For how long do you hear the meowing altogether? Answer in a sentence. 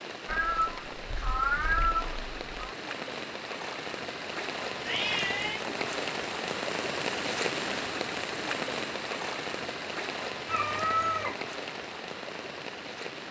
You can hear the meowing for 4 seconds altogether.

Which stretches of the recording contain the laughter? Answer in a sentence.
You can't hear the laughter here.